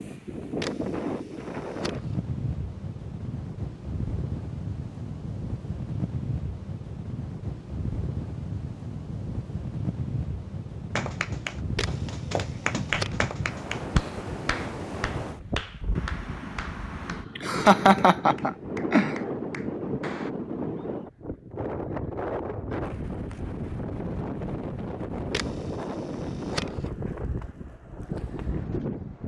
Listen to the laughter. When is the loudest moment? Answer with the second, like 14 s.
18 s.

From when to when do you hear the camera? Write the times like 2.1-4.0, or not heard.
0.6-2.1, 11.8-13.3, 25.3-26.9.